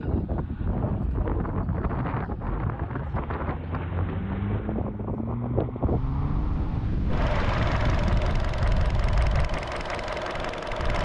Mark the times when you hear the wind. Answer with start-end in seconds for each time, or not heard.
0.0-11.0.